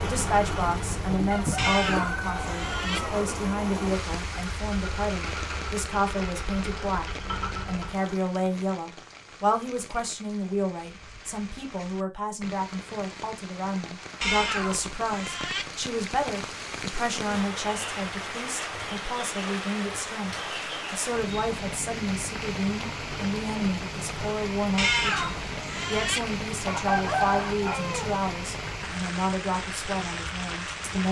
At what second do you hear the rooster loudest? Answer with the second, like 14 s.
27 s.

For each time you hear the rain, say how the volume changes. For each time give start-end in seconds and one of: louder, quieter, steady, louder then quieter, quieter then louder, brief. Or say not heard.
0.0-31.0 quieter then louder.